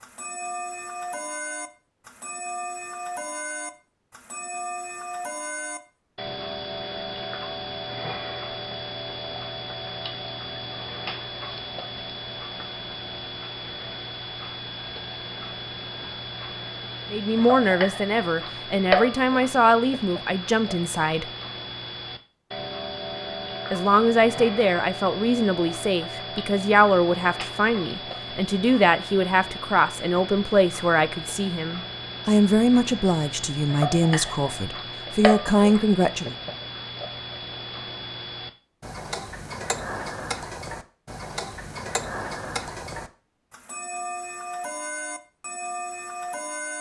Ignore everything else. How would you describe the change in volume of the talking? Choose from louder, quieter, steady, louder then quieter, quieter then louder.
steady.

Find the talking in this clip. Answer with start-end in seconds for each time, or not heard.
17.1-21.3, 23.7-36.4.